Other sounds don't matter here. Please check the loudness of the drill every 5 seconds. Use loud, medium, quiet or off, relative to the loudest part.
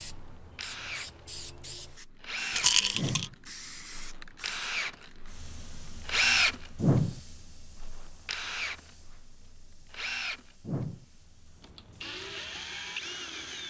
medium, loud, medium.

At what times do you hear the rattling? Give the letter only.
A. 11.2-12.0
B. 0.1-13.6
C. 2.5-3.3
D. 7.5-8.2
C.